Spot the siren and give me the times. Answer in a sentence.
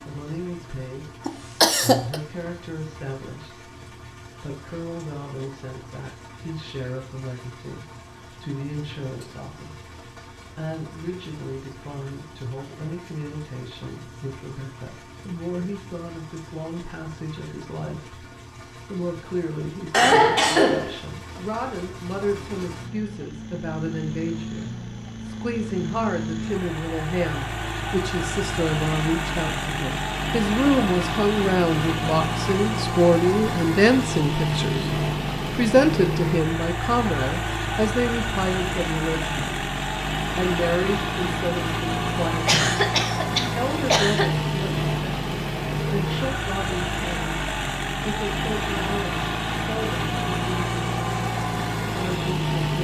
You can't hear the siren here.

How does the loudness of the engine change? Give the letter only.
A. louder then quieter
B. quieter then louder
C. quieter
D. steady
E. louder
E.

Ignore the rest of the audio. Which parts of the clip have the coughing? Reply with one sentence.
The coughing can be heard from 1.2 to 2.2 s, from 19.9 to 20.9 s and from 42.5 to 44.2 s.